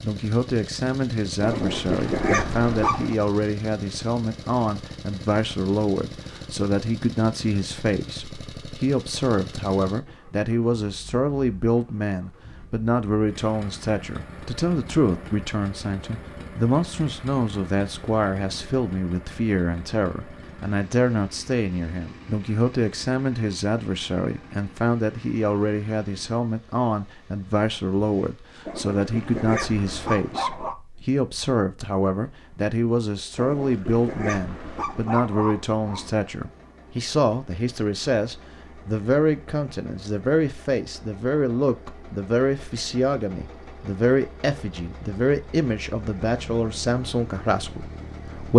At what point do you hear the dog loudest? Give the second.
2 s.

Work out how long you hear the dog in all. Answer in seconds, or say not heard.
7 s.